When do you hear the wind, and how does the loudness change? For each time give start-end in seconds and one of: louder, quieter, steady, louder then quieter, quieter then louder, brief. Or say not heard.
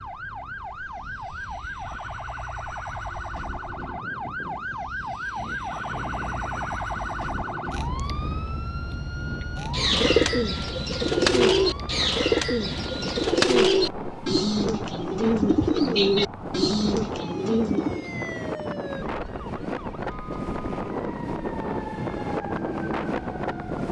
0.0-23.8 louder.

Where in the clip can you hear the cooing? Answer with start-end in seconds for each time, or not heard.
9.7-18.1.